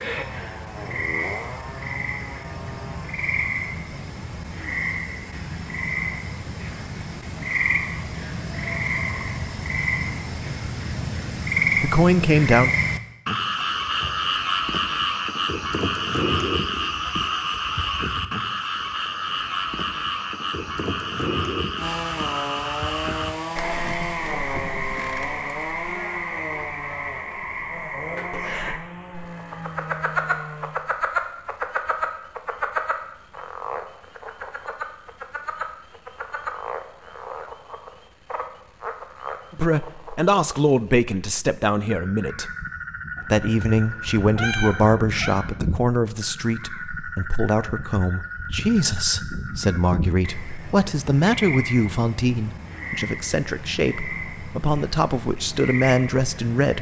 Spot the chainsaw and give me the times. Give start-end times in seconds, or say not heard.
0.1-3.1, 21.8-30.8.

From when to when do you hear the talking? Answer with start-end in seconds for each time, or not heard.
11.8-12.7, 39.5-42.5, 43.3-56.7.